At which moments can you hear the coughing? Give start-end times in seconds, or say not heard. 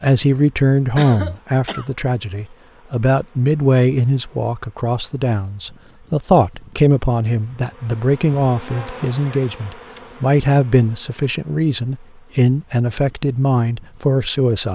0.9-1.9.